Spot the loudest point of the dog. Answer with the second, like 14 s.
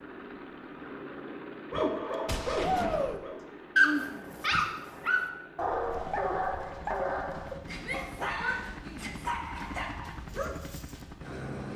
4 s.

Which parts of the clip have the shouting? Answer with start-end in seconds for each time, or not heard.
2.6-3.2, 7.8-9.2.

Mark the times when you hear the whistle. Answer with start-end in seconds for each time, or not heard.
not heard.